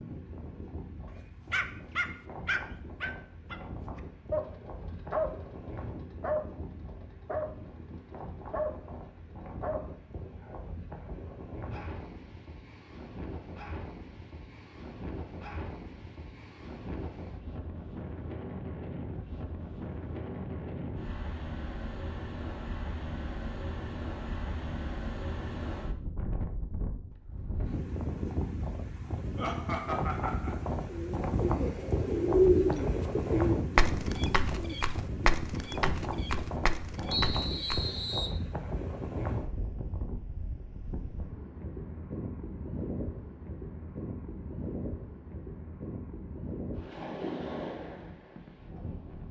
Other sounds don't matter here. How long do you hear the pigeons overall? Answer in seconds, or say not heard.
7 s.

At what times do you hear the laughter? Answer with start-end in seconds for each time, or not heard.
29.4-30.6.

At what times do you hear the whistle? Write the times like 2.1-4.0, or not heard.
37.1-38.4.